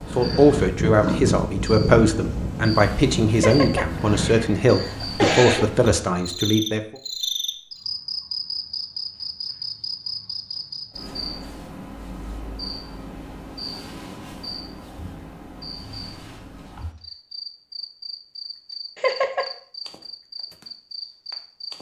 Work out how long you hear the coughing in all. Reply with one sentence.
The coughing can be heard for 3 seconds in total.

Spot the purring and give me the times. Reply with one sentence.
The purring can be heard from 0.0 to 4.5 s.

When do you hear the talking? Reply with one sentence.
You can hear the talking from 0.1 to 6.8 s.